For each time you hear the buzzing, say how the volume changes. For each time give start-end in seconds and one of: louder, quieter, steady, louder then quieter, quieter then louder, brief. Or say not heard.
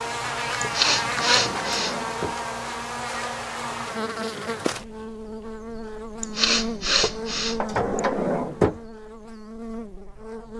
0.0-10.5 quieter.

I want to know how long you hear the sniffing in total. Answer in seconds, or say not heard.
3 s.